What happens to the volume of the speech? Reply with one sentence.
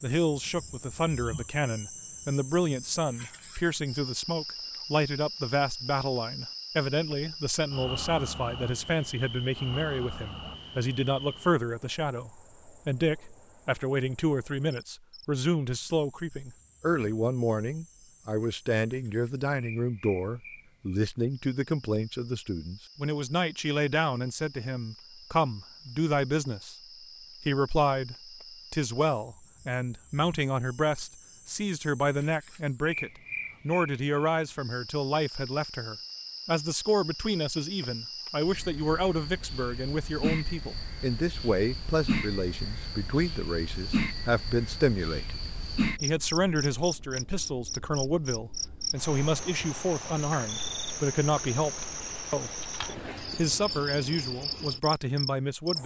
The loudness of the speech stays about the same.